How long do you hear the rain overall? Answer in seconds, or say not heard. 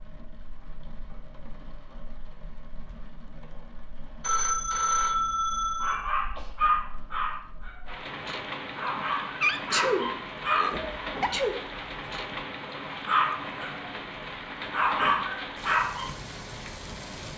17 s.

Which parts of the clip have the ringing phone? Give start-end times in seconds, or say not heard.
4.2-6.0.